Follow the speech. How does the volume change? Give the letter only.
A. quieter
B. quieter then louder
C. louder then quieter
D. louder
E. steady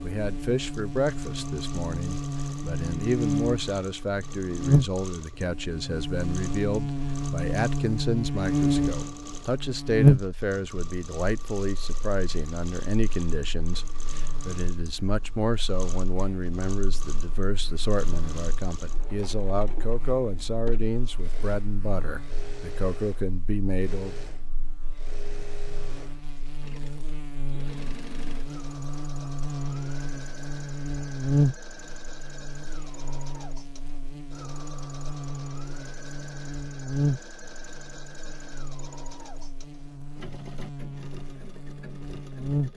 E.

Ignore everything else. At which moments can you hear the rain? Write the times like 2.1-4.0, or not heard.
not heard.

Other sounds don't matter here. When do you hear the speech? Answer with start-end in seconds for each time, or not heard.
0.0-24.2.